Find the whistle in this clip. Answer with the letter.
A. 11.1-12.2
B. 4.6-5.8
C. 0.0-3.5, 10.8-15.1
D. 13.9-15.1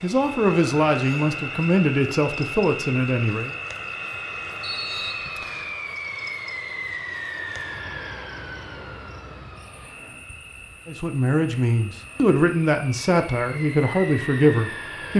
B.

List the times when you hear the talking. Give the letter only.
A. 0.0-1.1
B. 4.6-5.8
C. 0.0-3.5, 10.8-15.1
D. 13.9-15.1
C.